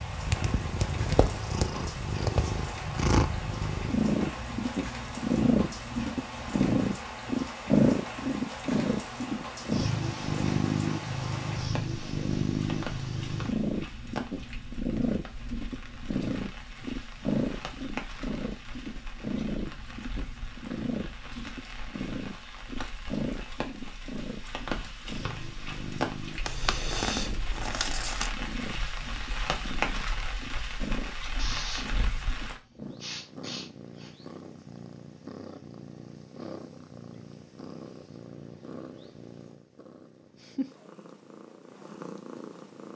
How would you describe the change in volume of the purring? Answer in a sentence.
The volume of the purring goes down.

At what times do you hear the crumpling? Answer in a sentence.
You can hear the crumpling from 26.4 to 28.3 s.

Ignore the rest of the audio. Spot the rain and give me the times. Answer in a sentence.
The rain can be heard from 0.0 to 32.6 s.